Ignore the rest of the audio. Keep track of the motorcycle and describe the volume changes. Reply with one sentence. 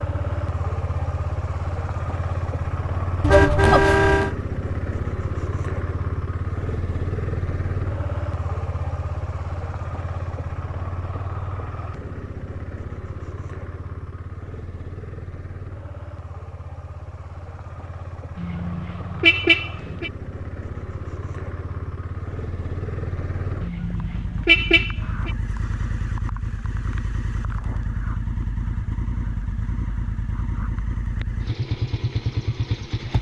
The loudness of the motorcycle goes down, then up.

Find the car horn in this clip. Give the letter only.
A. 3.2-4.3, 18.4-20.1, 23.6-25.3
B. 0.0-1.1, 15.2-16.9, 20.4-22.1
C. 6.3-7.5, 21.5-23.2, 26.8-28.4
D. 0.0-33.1
A.